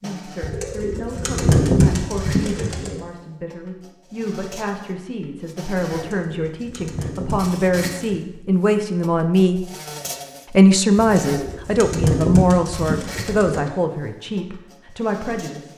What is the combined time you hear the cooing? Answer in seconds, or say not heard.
8 s.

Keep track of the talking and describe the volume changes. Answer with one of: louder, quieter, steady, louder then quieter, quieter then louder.
louder then quieter.